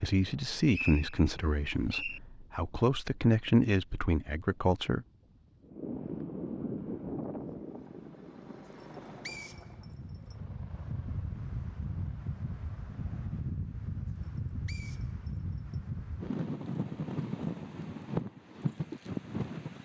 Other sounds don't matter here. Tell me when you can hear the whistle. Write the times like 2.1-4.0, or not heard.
0.3-2.2, 8.8-10.3, 14.7-15.8.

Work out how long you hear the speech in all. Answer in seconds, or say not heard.
5 s.